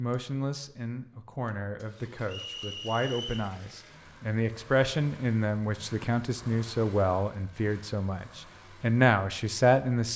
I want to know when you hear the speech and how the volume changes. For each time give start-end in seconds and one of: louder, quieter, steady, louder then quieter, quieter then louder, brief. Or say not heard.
0.0-10.1 louder.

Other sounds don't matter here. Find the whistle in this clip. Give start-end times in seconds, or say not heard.
2.2-3.5.